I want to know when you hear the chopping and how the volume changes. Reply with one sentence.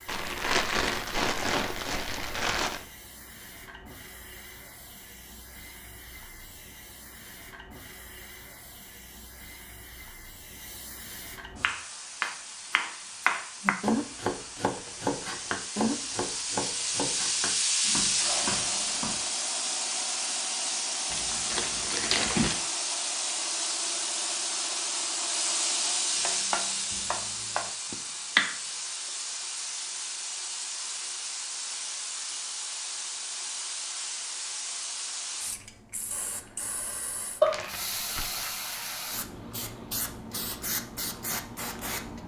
You can hear the chopping from 11.6 to 19.2 s, getting quieter; and briefly from 26.2 to 28.6 s.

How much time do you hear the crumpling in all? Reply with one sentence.
The crumpling can be heard for 5 seconds in total.